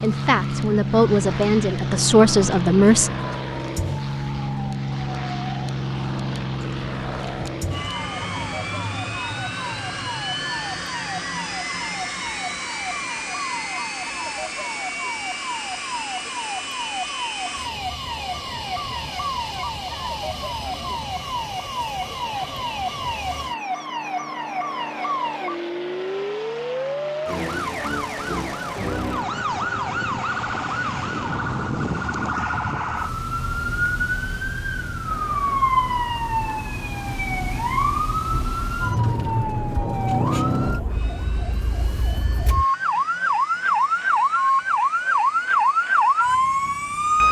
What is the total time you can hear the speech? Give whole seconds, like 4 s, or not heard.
3 s.